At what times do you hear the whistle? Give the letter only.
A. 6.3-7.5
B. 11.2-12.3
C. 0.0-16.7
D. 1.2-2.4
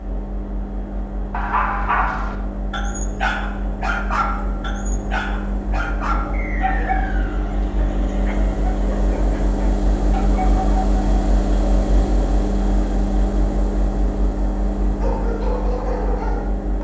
A.